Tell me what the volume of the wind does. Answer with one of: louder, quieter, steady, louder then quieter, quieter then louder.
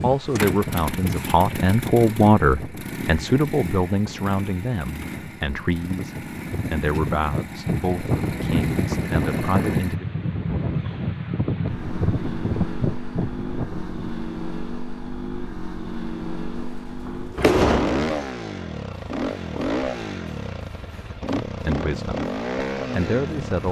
quieter then louder.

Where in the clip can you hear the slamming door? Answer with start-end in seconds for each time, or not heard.
16.6-18.1.